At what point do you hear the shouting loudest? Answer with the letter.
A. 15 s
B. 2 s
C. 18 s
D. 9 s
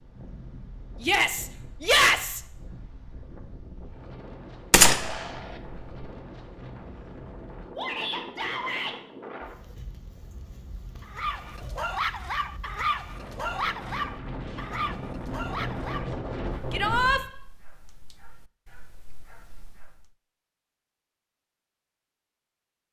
B.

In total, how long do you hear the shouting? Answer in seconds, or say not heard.
3 s.